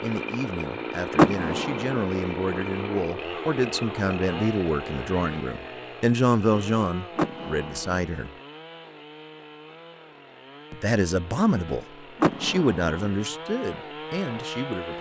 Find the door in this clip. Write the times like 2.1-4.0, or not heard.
1.1-2.0, 7.2-8.0, 12.2-12.9.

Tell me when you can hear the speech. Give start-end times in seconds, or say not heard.
0.0-8.3, 10.7-14.9.